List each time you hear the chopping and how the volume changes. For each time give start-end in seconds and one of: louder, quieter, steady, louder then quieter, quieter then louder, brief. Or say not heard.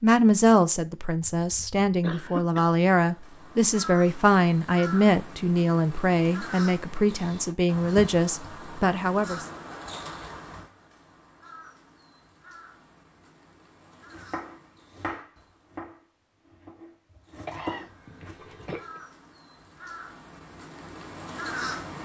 14.1-18.6 quieter then louder.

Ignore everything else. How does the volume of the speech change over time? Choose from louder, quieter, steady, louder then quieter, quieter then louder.
steady.